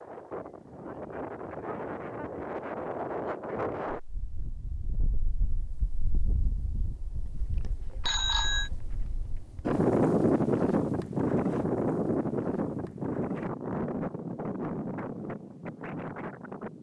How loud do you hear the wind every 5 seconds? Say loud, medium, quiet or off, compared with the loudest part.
medium, medium, loud, medium.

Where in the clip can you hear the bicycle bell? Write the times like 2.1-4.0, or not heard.
8.0-8.7.